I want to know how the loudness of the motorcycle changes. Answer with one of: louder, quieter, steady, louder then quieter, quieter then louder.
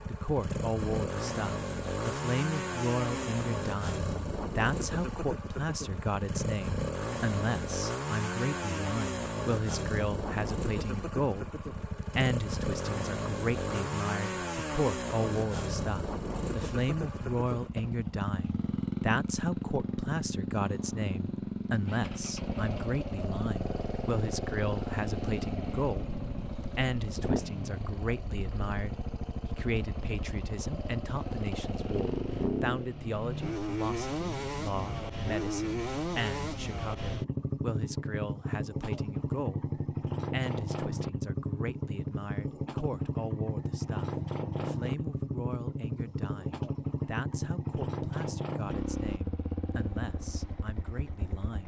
steady.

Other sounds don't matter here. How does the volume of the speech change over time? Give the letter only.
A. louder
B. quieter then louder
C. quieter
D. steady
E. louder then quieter
C.